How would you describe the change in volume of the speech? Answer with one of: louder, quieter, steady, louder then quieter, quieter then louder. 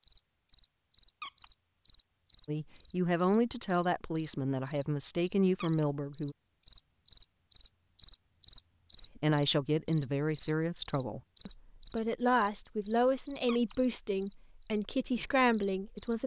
steady.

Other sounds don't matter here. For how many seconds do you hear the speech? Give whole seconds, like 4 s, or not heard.
11 s.